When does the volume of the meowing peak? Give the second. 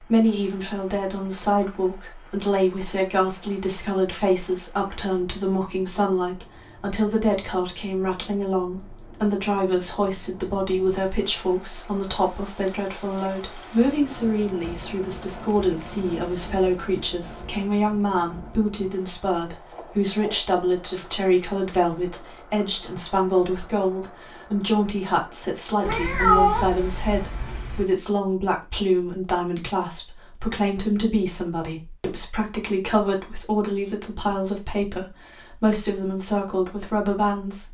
26 s.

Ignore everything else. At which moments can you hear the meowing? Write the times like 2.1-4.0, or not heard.
25.9-27.9.